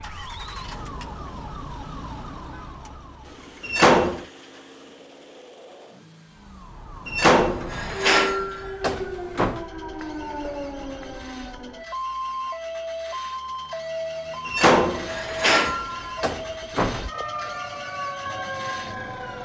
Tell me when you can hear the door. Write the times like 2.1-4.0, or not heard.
3.6-4.2, 7.0-9.7, 14.4-17.1.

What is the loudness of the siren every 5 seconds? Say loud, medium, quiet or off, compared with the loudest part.
medium, loud, loud, loud.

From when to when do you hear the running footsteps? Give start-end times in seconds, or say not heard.
not heard.